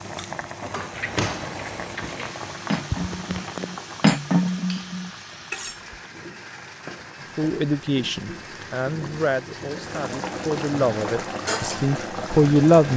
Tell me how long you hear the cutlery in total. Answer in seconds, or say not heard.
5 s.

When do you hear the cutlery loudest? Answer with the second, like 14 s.
4 s.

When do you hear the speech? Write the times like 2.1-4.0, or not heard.
7.3-12.9.